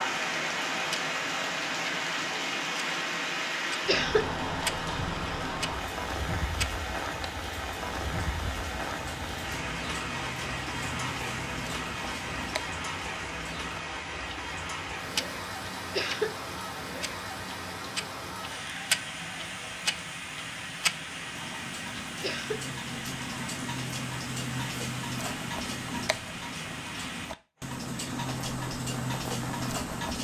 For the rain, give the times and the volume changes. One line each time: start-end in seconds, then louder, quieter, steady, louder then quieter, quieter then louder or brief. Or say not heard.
0.0-29.9 quieter.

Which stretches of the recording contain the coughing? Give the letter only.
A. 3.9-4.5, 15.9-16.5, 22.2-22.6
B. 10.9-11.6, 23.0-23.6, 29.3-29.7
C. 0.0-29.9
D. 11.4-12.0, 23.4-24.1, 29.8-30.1
A.